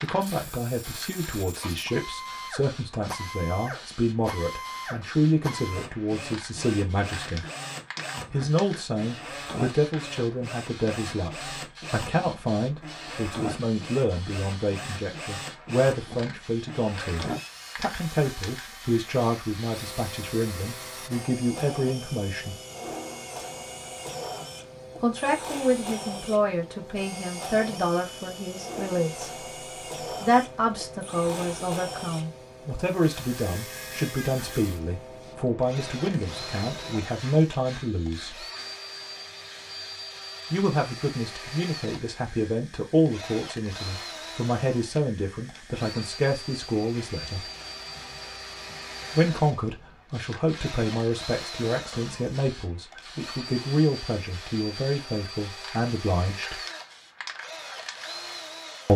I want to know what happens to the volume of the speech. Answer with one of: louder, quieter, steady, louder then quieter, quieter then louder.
steady.